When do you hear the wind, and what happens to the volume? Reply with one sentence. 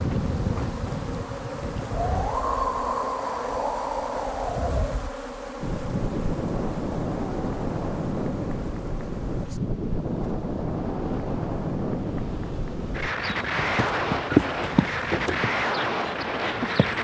You can hear the wind from 0.0 to 17.0 s, at a steady volume.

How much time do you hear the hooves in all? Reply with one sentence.
You can hear the hooves for 4 seconds altogether.